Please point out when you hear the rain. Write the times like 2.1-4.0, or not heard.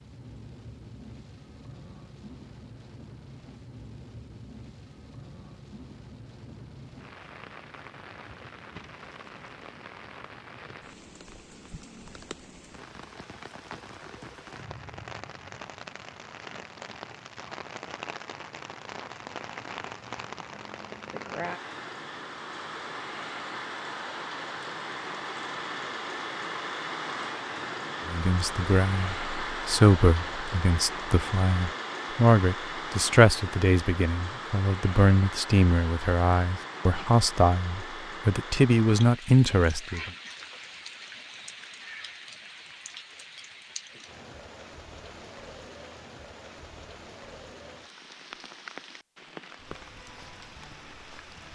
0.0-51.5.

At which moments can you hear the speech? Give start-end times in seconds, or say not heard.
28.1-40.1.